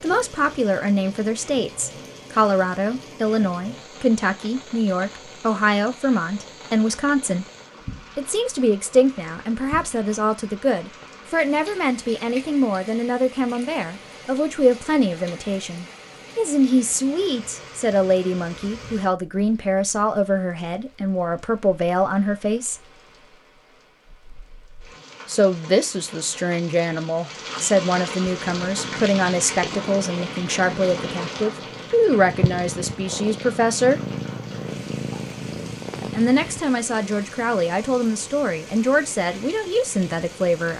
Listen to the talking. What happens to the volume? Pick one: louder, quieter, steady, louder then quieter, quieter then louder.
steady.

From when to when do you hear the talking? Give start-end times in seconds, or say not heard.
0.0-7.5, 8.2-22.8, 25.2-34.0, 36.0-40.7.